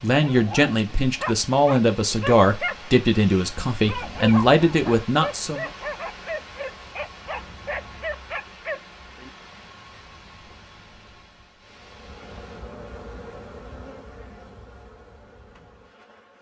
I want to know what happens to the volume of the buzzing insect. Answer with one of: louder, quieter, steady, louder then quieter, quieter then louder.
quieter.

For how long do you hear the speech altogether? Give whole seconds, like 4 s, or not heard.
6 s.